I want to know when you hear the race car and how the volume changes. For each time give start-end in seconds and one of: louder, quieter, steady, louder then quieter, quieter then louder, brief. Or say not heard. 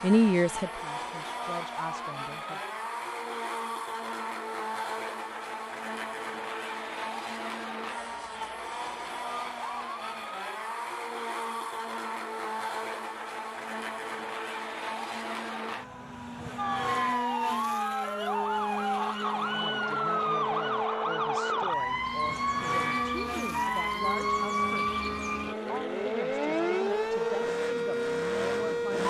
0.0-29.0 steady.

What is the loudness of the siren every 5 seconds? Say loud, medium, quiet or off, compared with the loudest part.
off, off, off, loud, loud, loud.